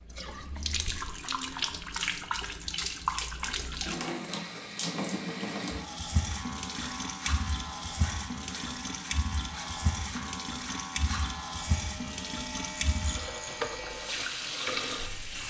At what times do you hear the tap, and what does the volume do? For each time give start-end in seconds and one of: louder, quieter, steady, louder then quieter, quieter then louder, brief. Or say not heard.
0.0-15.4 steady.